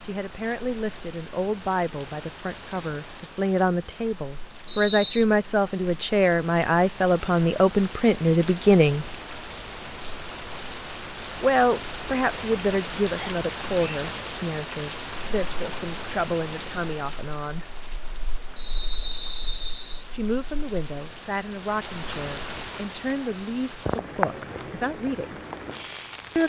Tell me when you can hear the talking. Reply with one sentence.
The talking can be heard from 0.1 to 9.1 s, from 11.4 to 17.6 s and from 20.1 to 25.4 s.